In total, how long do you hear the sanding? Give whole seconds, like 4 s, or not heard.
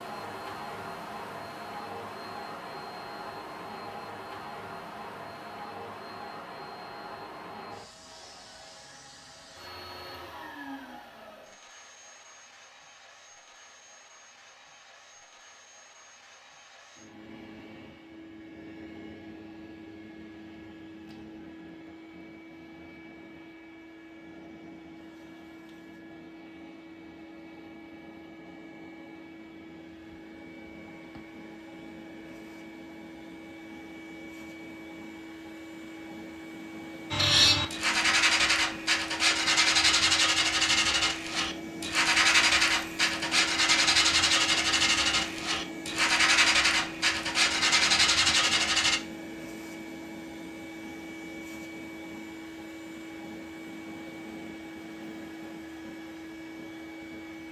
12 s.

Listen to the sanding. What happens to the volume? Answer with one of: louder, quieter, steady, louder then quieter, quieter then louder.
steady.